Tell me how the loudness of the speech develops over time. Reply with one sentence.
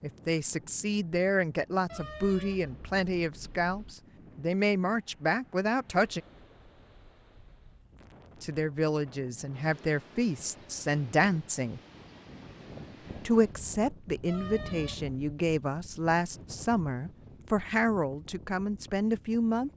The loudness of the speech stays about the same.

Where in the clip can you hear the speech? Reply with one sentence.
The speech can be heard from 0.0 to 6.2 s, from 8.4 to 11.8 s and from 13.2 to 19.7 s.